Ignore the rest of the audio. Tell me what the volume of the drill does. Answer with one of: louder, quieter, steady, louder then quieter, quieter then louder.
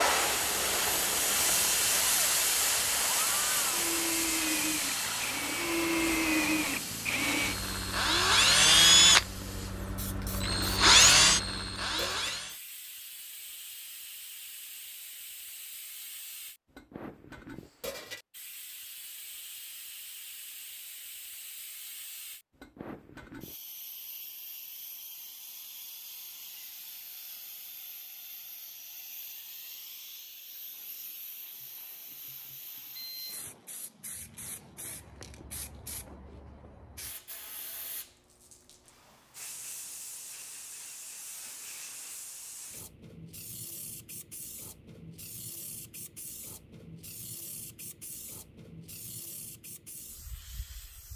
louder.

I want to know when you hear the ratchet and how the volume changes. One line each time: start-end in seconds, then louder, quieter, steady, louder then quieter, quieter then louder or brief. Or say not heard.
not heard.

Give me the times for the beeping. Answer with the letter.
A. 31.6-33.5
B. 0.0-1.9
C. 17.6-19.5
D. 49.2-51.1
A.